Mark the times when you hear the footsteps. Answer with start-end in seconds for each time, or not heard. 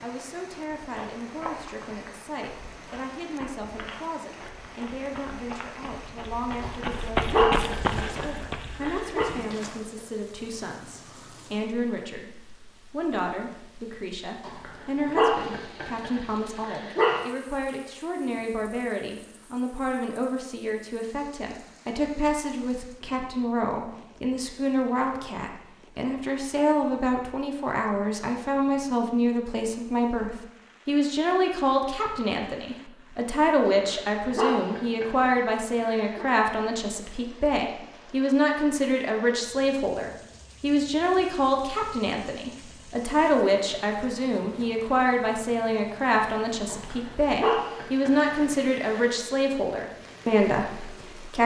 0.8-9.9.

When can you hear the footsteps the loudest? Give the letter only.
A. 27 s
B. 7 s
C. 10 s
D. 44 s
B.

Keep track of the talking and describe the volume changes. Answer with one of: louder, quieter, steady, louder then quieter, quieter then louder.
louder.